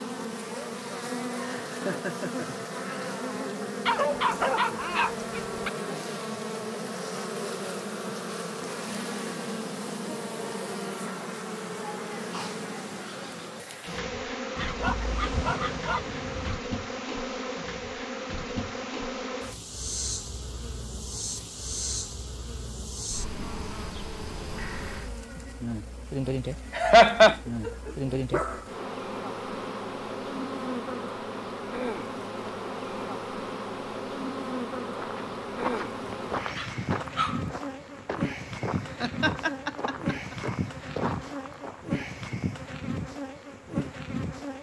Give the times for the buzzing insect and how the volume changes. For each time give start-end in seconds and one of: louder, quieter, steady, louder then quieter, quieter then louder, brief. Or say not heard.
0.0-44.5 steady.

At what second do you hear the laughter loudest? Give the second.
27 s.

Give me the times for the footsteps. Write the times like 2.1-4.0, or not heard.
35.0-41.9.